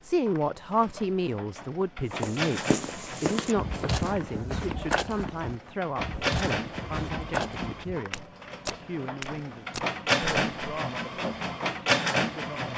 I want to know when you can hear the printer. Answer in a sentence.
You can hear the printer from 0.0 to 12.7 s.